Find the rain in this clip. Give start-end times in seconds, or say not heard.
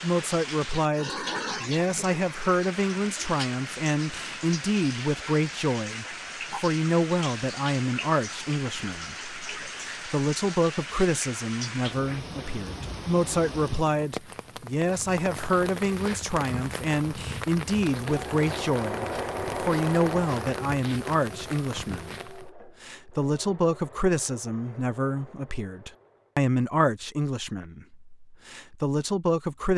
0.0-22.5.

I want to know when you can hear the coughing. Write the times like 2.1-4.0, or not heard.
not heard.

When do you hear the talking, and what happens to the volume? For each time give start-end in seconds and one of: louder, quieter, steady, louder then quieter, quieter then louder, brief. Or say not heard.
0.0-29.7 steady.